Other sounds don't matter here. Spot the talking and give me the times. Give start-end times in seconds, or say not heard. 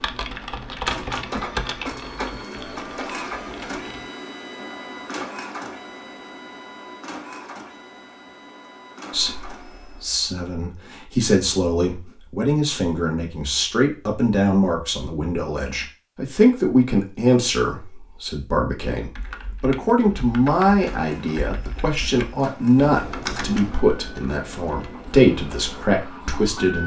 9.1-26.8.